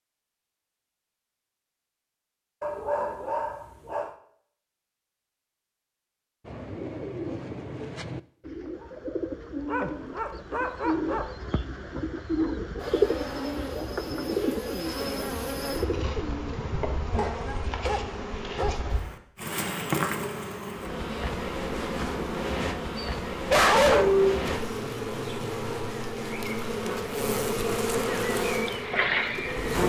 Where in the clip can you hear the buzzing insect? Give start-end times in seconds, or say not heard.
12.8-29.8.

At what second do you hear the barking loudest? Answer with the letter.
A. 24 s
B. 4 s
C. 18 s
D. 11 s
A.